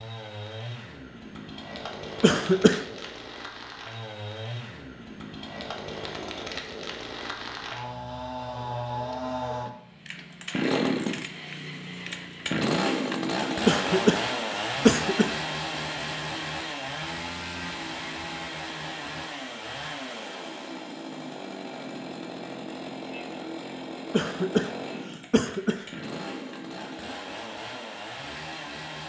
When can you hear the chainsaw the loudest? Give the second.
13 s.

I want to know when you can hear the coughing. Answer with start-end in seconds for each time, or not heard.
2.2-2.9, 13.7-15.3, 24.1-25.9.